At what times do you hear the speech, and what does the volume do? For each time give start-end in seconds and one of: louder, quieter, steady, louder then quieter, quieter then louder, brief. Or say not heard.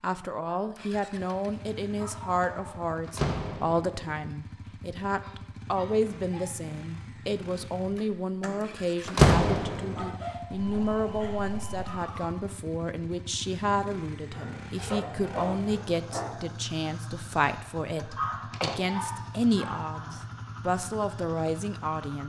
0.0-22.2 steady.